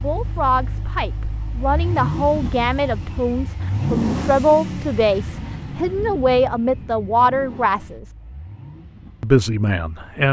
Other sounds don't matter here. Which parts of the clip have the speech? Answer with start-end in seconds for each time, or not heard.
0.0-8.1, 9.2-10.2.